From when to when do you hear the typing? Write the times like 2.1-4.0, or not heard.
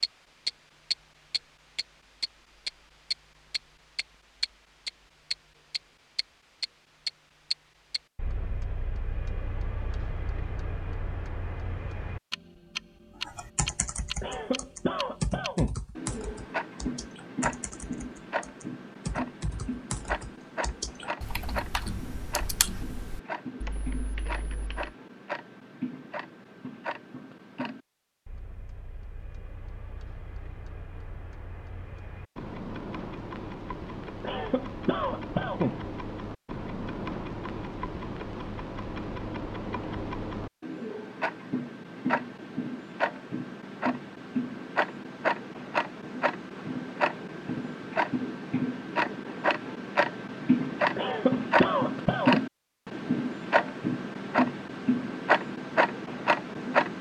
13.2-24.9.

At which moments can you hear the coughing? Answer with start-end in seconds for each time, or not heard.
14.2-15.8, 34.2-35.8, 51.0-52.4.